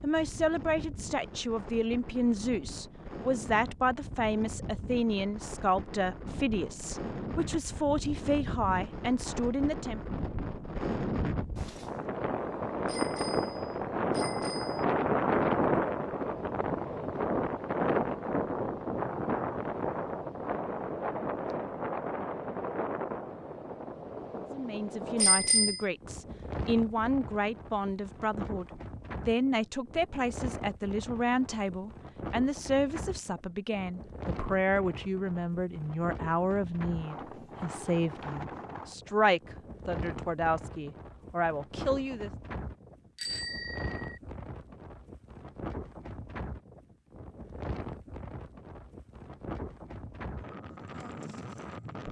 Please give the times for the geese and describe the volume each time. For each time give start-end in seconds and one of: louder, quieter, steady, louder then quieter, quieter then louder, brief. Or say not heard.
not heard.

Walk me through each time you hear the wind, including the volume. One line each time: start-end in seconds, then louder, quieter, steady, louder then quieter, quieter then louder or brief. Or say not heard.
0.0-52.0 louder then quieter.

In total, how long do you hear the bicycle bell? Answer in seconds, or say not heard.
4 s.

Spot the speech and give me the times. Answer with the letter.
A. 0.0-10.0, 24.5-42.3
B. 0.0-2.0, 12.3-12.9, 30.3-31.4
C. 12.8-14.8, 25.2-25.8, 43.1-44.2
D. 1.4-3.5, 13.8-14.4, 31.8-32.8
A.